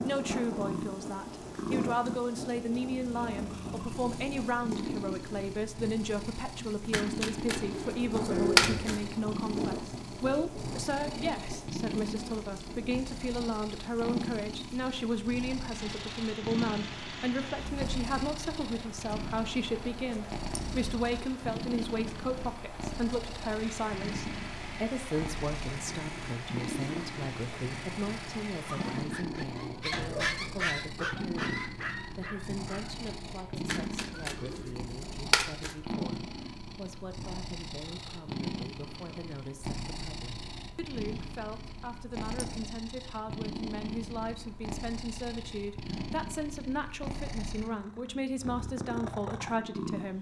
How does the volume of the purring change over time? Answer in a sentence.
The loudness of the purring stays about the same.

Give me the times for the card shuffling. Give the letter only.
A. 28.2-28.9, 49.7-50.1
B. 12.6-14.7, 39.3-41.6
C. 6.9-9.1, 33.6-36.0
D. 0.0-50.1
C.